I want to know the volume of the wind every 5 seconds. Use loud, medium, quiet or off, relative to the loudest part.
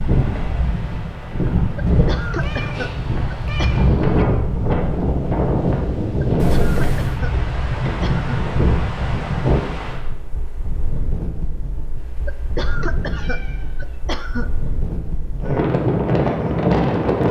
loud, loud, quiet, loud.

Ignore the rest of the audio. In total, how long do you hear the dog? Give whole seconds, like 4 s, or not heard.
not heard.